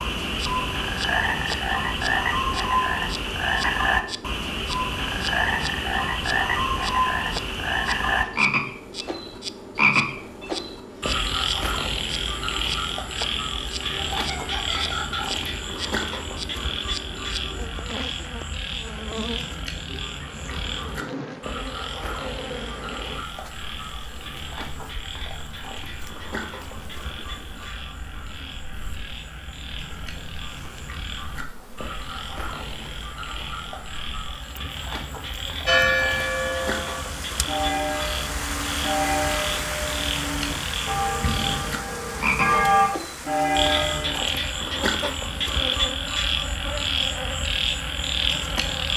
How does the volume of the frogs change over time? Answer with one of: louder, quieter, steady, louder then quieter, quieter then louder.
quieter then louder.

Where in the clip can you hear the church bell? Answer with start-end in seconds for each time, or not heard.
35.6-44.2.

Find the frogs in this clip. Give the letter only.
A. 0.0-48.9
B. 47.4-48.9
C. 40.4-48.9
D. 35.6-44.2
A.